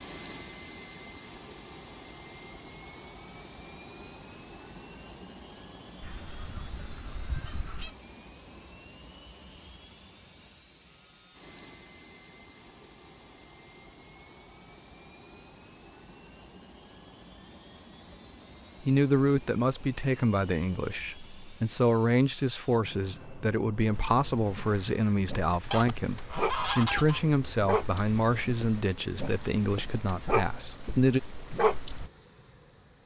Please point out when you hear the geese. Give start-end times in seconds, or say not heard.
6.0-8.0, 25.7-27.2.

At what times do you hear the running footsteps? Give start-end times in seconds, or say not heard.
not heard.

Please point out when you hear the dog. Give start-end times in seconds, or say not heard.
23.9-32.1.